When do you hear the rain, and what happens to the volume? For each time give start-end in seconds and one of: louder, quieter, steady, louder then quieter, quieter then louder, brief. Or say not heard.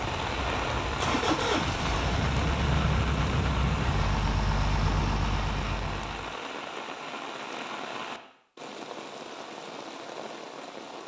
0.0-11.0 quieter.